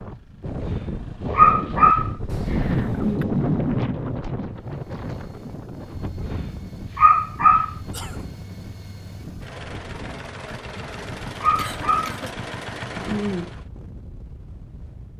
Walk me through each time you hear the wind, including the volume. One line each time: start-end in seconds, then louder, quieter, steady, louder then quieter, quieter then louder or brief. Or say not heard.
0.0-15.1 quieter.